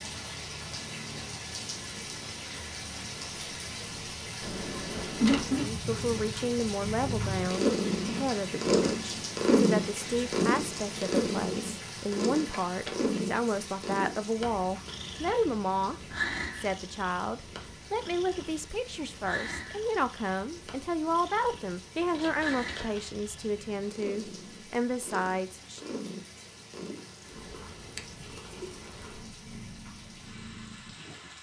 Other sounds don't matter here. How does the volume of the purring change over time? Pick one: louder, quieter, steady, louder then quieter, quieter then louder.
quieter.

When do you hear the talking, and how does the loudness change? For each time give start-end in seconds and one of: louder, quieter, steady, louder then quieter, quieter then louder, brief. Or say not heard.
5.5-25.9 steady.